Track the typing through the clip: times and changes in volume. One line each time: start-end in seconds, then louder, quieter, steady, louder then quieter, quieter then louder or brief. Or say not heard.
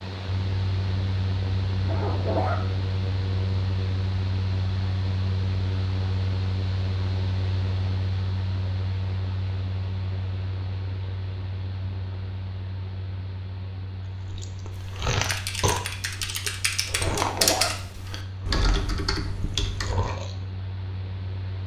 14.7-19.9 louder then quieter.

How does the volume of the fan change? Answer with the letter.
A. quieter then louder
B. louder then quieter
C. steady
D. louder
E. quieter
E.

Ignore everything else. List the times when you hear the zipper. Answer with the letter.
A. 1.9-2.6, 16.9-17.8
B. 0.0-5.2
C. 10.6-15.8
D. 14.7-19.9
A.